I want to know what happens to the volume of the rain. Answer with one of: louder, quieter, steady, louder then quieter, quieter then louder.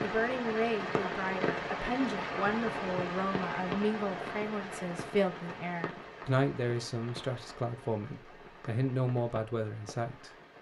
quieter.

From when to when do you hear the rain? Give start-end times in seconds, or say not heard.
0.0-10.5.